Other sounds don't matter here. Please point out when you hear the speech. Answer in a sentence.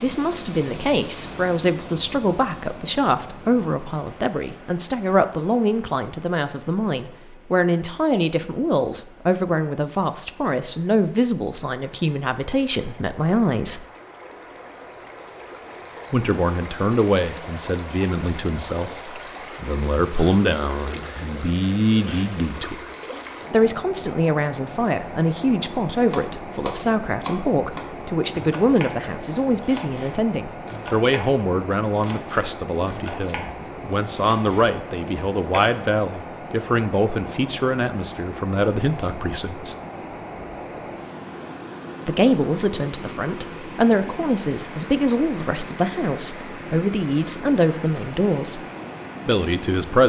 You can hear the speech from 0.0 to 13.8 s, from 16.1 to 22.9 s, from 23.5 to 39.8 s, from 42.0 to 48.6 s and from 49.2 to 50.0 s.